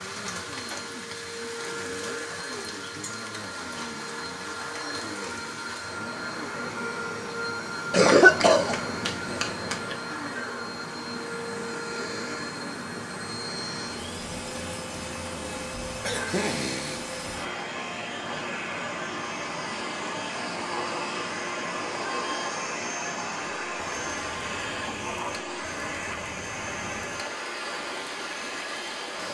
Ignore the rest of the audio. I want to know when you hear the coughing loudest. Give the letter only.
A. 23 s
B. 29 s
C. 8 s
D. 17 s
C.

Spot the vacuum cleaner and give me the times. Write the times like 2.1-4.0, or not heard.
0.0-29.2.